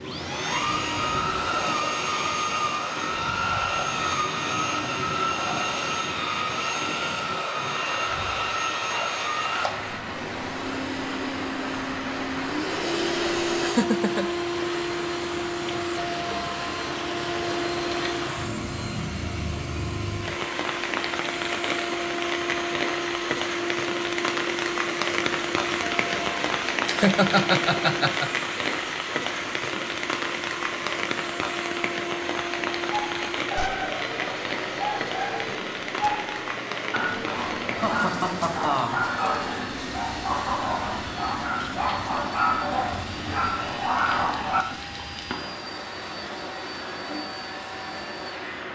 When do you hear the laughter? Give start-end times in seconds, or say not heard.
13.6-14.2, 26.9-28.3, 37.8-39.0.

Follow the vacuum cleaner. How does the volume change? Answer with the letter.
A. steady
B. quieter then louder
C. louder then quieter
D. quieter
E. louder
D.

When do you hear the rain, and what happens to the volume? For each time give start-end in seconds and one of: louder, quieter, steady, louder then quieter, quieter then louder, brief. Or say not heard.
0.0-48.6 louder then quieter.